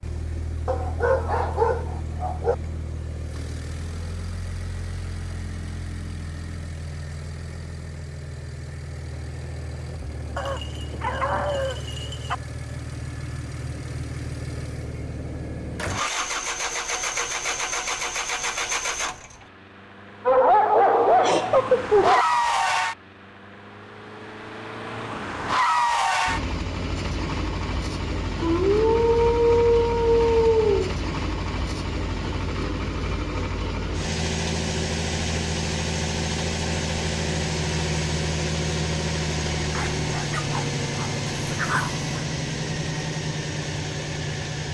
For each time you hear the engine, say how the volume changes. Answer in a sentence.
The engine can be heard from 0.0 to 44.6 s, getting louder.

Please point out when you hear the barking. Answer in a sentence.
You can hear the barking from 0.7 to 2.5 s, from 10.3 to 12.3 s, from 20.2 to 22.2 s, from 28.4 to 30.9 s and from 39.8 to 42.2 s.